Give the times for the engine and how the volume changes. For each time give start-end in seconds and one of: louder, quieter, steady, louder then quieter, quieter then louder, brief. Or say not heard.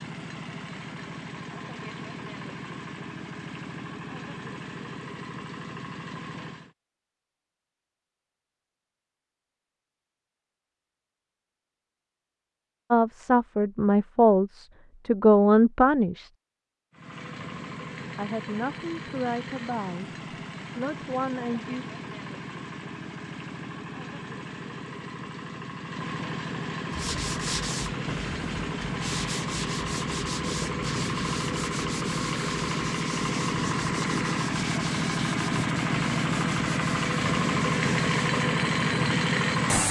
0.0-6.8 steady
16.9-39.8 louder.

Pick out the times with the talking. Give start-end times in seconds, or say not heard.
12.9-16.3, 18.1-20.1, 20.8-21.9.